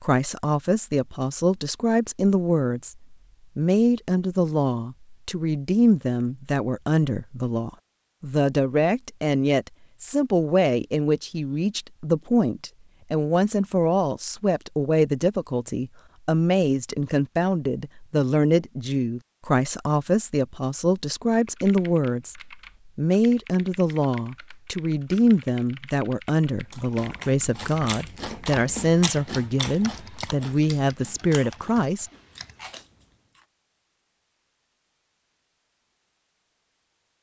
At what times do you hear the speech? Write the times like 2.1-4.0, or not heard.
0.0-32.1.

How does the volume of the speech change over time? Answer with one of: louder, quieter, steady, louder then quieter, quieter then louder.
steady.